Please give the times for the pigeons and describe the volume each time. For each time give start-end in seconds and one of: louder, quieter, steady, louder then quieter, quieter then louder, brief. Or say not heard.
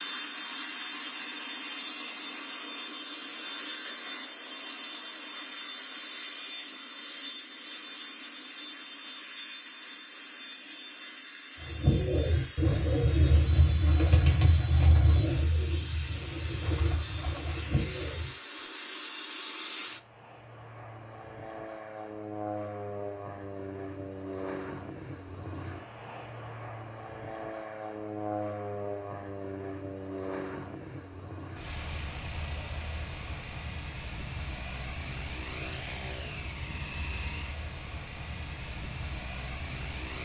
11.6-18.6 quieter.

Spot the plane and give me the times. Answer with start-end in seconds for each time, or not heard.
0.0-40.2.